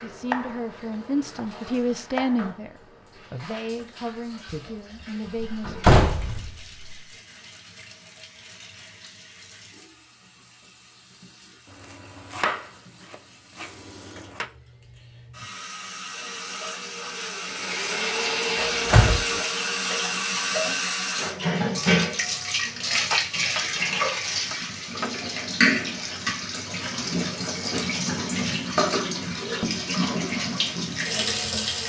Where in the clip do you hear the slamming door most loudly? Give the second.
6 s.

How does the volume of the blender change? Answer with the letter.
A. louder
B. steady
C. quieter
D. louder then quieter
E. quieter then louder
D.